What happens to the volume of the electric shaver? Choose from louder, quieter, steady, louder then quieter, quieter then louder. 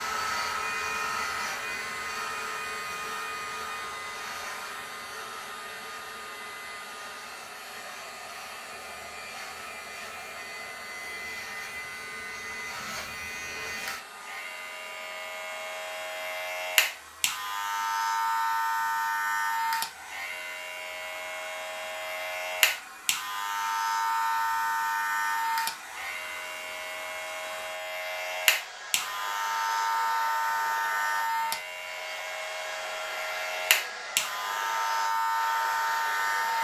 louder.